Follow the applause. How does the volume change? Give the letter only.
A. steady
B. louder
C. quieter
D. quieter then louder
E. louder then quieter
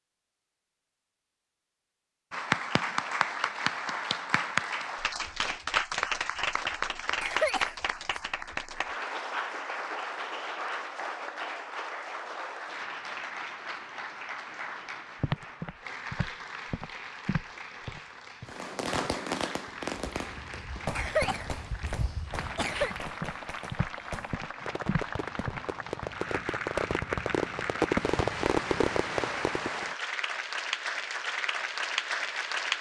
D.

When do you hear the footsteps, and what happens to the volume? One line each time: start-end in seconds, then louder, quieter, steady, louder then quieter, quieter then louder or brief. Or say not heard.
15.2-25.6 quieter then louder.